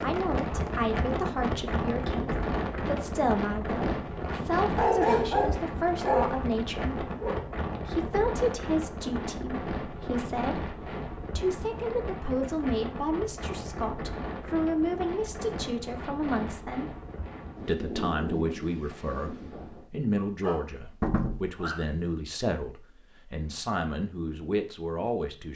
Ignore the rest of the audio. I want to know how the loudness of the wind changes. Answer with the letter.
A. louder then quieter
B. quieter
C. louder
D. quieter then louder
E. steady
B.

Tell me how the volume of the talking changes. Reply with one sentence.
The loudness of the talking stays about the same.